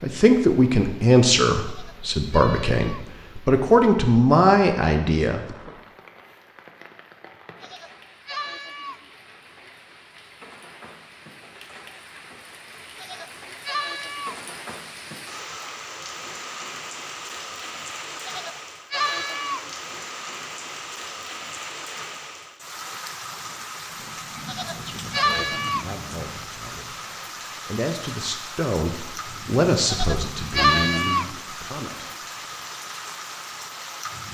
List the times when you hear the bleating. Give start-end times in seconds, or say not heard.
1.6-3.1, 7.6-9.1, 13.0-14.4, 18.2-19.7, 24.4-25.9, 29.9-31.4.